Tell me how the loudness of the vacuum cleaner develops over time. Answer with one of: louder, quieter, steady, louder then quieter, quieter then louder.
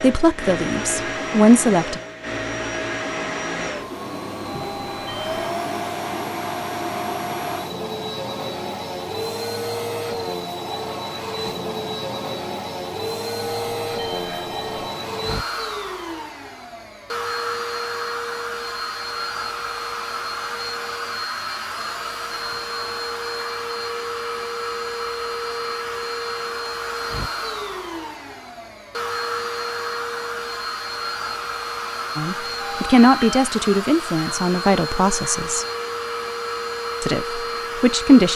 steady.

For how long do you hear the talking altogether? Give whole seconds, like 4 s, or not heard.
7 s.